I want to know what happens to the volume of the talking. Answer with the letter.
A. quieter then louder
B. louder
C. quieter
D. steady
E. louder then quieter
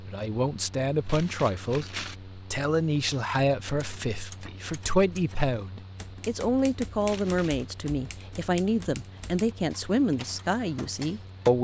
D.